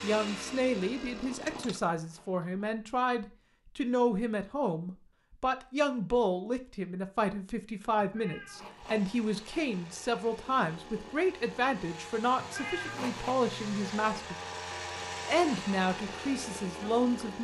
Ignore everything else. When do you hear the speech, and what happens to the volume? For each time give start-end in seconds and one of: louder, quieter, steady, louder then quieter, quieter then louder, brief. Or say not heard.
0.0-14.3 steady
15.2-17.3 brief.